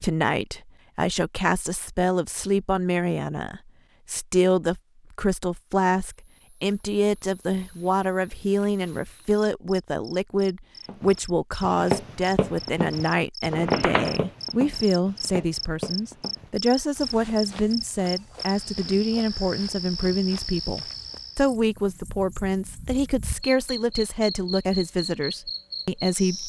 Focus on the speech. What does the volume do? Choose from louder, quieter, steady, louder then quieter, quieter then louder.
steady.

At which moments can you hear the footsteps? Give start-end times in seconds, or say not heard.
10.8-21.2.